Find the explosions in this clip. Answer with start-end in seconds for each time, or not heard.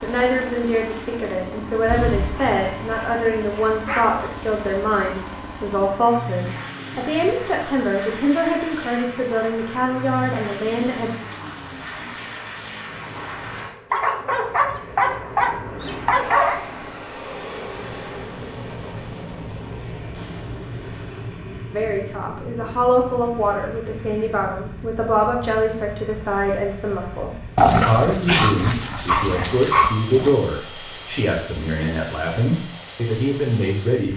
1.9-2.9, 20.1-21.4.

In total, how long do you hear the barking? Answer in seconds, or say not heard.
7 s.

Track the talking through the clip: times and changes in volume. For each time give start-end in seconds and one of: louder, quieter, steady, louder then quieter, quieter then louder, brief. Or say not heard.
0.0-11.2 steady
21.7-34.1 steady.